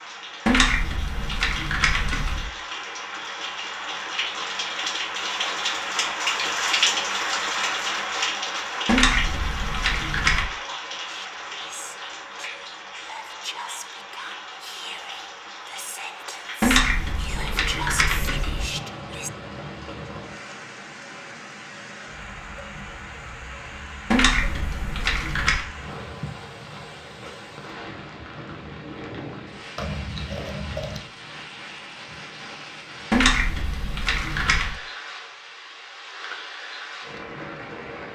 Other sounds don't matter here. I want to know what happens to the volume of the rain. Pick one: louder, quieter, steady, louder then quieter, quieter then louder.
quieter.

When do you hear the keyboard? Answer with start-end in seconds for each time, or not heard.
0.5-2.5, 8.8-10.4, 16.6-18.6, 24.1-25.6, 33.1-34.8.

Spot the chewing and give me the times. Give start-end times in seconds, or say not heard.
29.8-31.0.